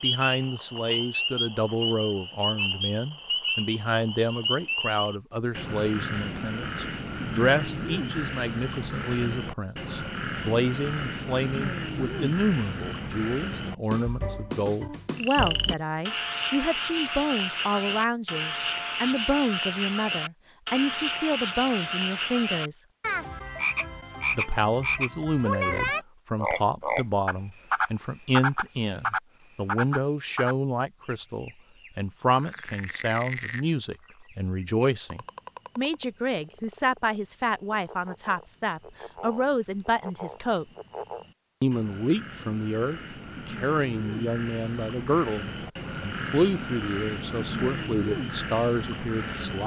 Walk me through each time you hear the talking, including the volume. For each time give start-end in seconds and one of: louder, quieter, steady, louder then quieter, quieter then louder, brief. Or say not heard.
0.0-22.9 steady
24.4-40.6 steady
41.6-49.6 steady.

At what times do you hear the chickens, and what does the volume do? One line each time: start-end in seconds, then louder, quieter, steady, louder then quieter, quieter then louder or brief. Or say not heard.
not heard.